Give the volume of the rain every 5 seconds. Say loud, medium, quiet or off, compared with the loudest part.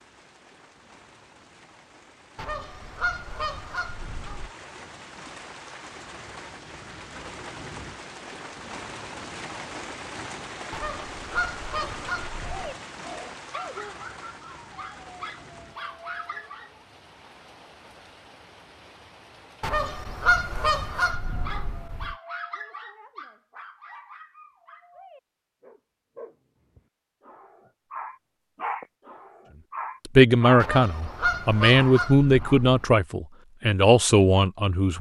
medium, loud, loud, medium, off, off, off.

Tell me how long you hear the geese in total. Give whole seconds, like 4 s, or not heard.
9 s.